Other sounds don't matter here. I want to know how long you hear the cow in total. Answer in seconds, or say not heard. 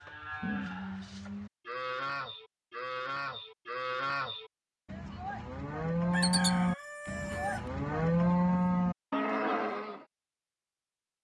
10 s.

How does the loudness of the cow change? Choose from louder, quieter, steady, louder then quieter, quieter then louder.
louder.